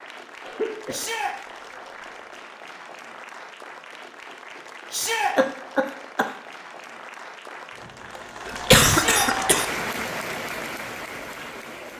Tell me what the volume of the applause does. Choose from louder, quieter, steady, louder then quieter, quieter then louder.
louder.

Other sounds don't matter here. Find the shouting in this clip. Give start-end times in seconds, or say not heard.
0.9-1.4, 4.9-5.3, 8.8-9.3.